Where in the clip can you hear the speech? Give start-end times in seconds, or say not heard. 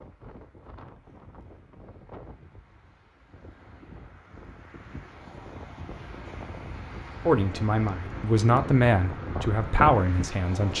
7.2-10.7.